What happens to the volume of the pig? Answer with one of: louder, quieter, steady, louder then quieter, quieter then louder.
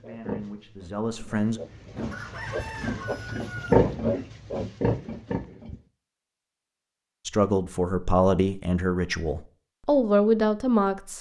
louder then quieter.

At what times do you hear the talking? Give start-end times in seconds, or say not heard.
0.0-1.6, 7.2-11.1.